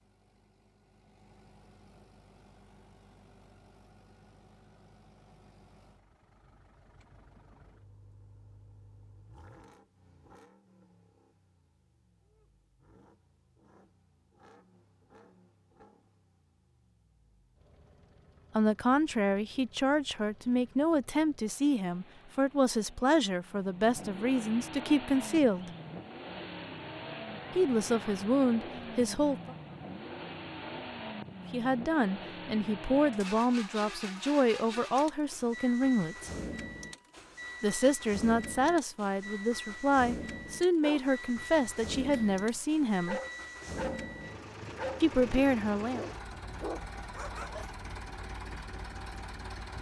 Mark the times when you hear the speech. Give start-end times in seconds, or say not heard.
18.6-25.7, 27.6-29.6, 31.5-36.3, 37.6-43.2, 45.0-46.0.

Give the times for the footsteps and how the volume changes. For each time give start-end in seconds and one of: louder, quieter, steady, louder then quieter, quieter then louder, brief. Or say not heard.
not heard.